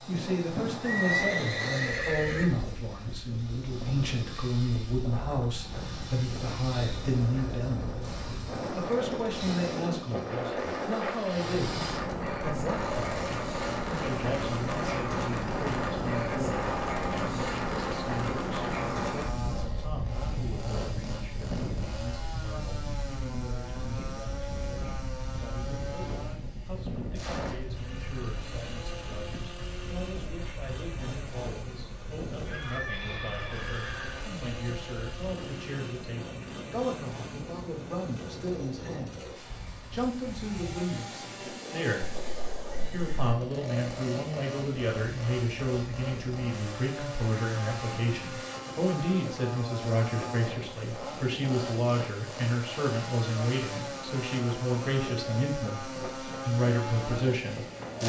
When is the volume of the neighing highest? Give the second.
1 s.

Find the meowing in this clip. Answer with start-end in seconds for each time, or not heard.
not heard.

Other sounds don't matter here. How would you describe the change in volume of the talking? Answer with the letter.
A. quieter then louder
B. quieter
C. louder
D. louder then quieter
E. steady
A.